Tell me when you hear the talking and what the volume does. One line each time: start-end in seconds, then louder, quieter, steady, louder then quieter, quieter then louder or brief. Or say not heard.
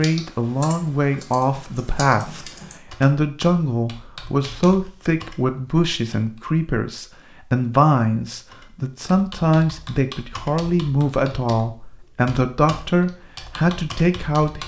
0.0-14.6 steady.